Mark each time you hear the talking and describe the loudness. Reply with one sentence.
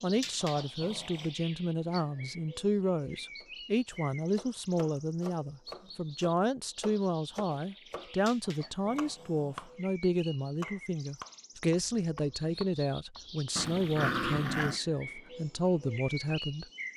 You can hear the talking from 0.0 to 16.6 s, at a steady volume.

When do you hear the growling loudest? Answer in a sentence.
The volume of the growling peaks at 14 seconds.